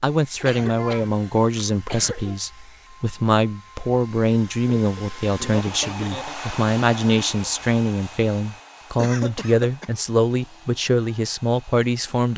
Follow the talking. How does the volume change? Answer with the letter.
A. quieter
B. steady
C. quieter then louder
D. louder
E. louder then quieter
B.